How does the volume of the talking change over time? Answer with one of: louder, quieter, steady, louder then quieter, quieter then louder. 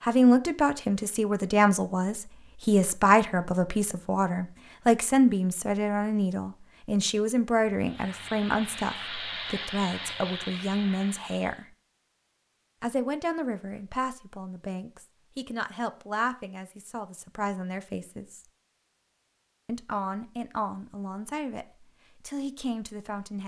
quieter.